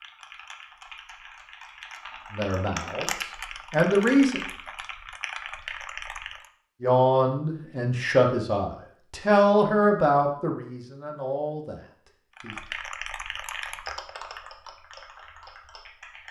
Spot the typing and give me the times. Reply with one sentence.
The typing can be heard from 0.0 to 6.5 s and from 12.3 to 16.2 s.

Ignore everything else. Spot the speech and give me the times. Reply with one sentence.
The speech can be heard from 2.3 to 4.4 s and from 6.8 to 12.6 s.